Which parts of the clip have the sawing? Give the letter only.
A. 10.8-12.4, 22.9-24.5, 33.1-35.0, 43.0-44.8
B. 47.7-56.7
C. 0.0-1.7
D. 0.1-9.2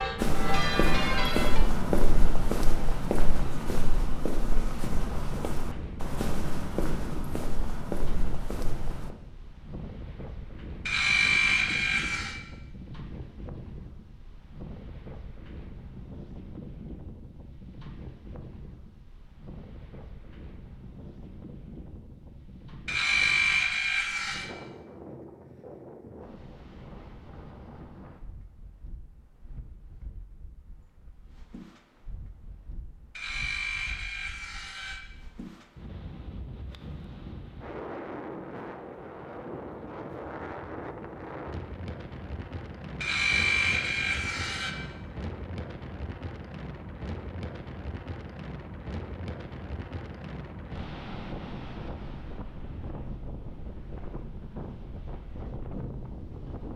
A.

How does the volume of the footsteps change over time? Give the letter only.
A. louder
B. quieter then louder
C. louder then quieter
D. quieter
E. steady
D.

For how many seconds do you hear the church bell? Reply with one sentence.
You can hear the church bell for 2 seconds altogether.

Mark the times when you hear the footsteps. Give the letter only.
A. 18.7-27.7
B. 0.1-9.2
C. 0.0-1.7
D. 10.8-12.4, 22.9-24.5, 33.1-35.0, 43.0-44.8
B.